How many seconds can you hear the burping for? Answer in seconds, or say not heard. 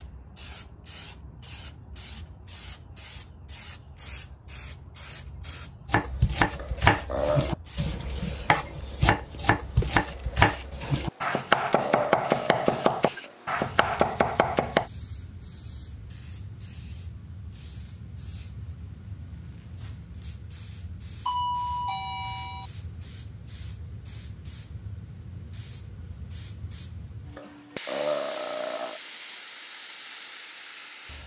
5 s.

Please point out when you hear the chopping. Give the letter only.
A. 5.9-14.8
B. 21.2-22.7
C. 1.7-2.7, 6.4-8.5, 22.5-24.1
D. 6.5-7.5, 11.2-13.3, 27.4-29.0
A.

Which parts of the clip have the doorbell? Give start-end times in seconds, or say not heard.
21.2-22.7.